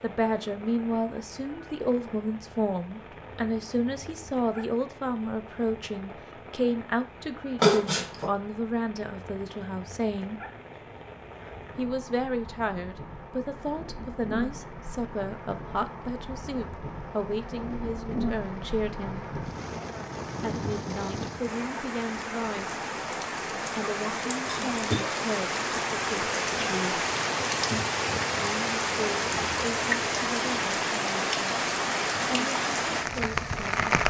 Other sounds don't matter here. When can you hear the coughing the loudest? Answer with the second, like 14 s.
8 s.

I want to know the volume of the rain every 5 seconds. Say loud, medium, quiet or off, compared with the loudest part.
quiet, quiet, quiet, medium, medium, loud, loud.